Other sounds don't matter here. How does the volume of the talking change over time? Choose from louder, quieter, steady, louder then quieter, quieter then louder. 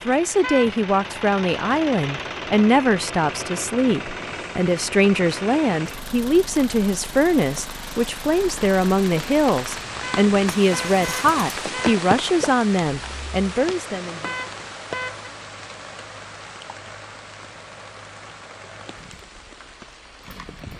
steady.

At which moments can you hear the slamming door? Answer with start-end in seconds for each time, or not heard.
not heard.